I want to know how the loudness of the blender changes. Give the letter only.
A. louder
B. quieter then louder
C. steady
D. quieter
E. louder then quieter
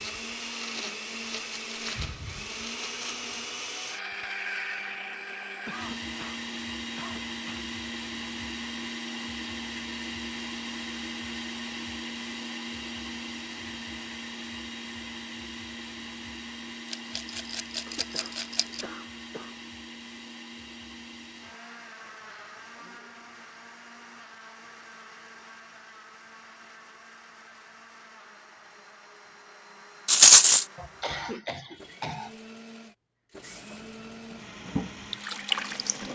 D.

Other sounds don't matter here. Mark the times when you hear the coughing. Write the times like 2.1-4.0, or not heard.
5.7-7.7, 17.9-19.6, 30.8-32.3.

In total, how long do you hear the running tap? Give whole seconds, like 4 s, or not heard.
3 s.